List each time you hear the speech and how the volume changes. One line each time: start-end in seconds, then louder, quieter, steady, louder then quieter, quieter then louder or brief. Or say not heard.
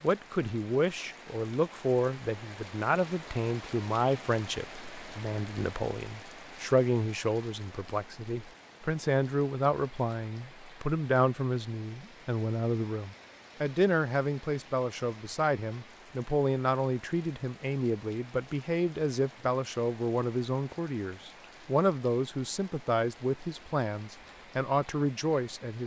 0.0-25.8 steady.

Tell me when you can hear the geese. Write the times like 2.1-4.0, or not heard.
not heard.